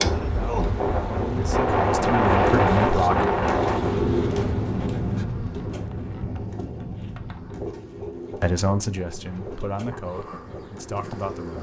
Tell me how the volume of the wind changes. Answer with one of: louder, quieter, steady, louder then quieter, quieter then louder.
quieter.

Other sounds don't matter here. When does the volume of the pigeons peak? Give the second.
4 s.